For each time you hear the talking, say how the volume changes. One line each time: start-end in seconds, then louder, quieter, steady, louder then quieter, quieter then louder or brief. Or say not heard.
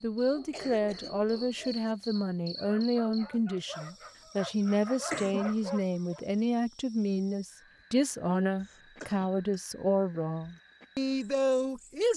0.0-12.1 steady.